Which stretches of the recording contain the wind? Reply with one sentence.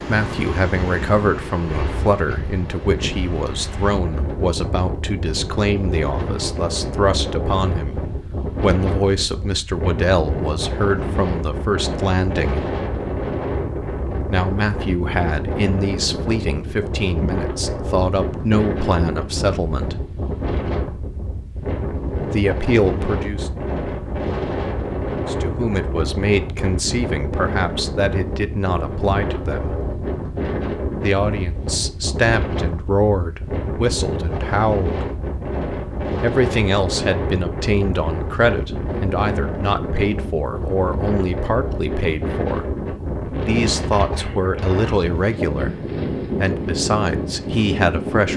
You can hear the wind from 0.0 to 48.3 s.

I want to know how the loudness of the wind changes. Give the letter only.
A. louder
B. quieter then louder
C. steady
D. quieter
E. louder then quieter
C.